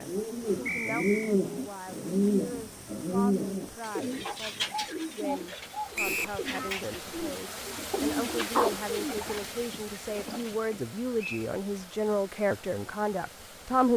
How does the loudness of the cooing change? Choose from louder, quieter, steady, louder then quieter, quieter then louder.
quieter.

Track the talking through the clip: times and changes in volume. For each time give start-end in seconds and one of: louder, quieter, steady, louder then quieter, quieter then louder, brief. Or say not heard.
0.0-13.9 louder.